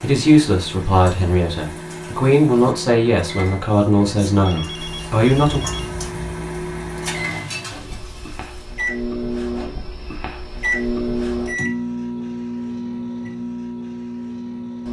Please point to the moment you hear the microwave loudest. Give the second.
11 s.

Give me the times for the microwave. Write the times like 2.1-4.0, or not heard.
0.0-14.8.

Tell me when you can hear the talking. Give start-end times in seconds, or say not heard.
0.0-5.6.